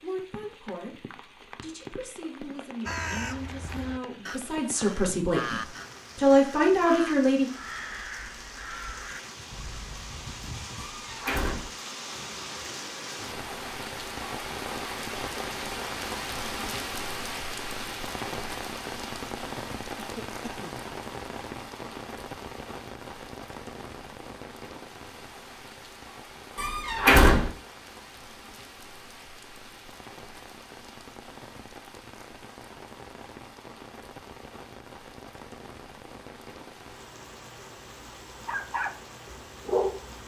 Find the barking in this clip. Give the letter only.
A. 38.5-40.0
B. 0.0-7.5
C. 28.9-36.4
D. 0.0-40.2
A.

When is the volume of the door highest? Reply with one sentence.
The volume of the door peaks at 27 seconds.